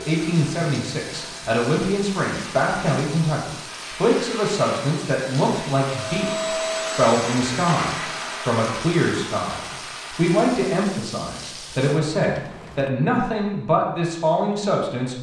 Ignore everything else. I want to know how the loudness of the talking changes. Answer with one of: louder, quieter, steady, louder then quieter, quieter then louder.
steady.